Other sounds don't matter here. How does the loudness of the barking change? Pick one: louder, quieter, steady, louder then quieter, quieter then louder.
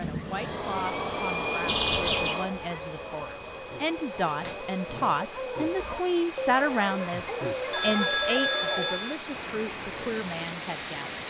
louder.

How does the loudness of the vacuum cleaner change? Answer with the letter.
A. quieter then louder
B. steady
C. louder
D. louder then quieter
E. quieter
E.